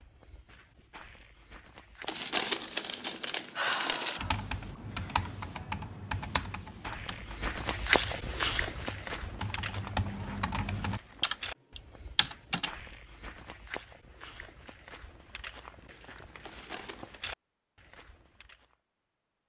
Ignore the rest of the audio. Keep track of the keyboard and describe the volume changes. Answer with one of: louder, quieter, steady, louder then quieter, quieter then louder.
quieter then louder.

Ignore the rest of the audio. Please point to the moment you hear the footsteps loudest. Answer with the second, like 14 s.
8 s.